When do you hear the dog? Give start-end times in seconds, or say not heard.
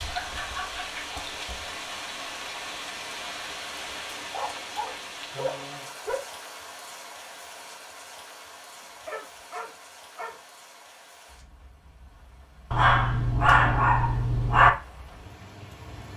0.2-1.8, 4.3-6.2, 9.1-10.3, 12.7-14.7.